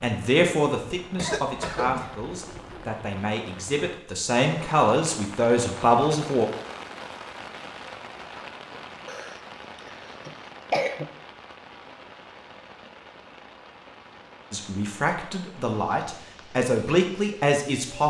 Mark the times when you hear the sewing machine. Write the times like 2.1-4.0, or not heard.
not heard.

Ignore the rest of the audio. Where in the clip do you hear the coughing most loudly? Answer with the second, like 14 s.
11 s.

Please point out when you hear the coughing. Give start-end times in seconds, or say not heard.
1.1-2.9, 9.1-11.1.